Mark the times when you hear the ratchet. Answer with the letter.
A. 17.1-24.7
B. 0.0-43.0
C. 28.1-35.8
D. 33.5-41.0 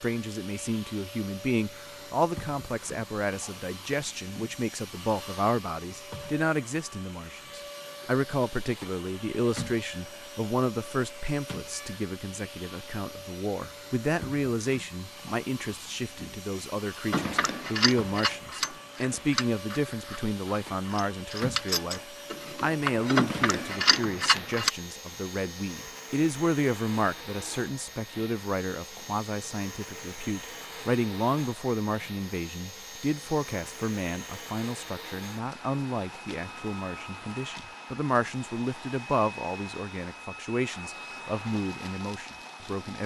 A.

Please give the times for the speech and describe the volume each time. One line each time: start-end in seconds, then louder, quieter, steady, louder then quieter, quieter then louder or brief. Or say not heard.
0.0-43.0 steady.